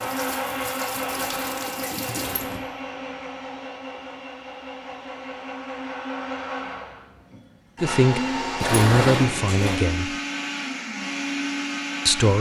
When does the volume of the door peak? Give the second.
9 s.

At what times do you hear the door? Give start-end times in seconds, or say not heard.
1.0-2.6, 8.6-9.8.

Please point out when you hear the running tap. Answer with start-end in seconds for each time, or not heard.
0.0-2.5.